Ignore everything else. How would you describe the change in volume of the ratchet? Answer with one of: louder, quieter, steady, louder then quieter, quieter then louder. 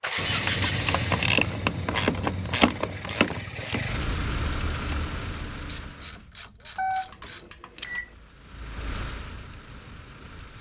quieter.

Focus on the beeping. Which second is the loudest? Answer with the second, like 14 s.
7 s.